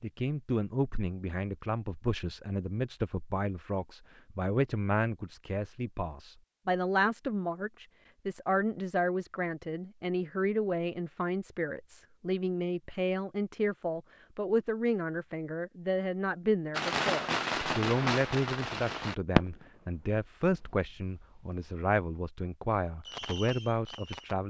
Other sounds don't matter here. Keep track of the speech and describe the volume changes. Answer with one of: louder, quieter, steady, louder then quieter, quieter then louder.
steady.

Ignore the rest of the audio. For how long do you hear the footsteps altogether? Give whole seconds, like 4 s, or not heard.
not heard.